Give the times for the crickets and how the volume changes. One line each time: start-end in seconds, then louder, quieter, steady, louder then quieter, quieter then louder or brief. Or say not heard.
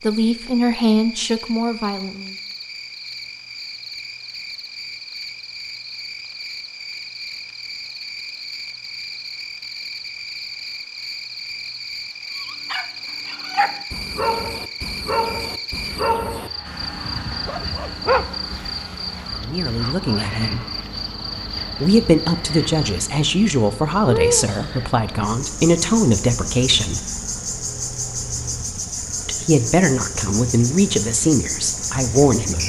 0.0-32.6 louder.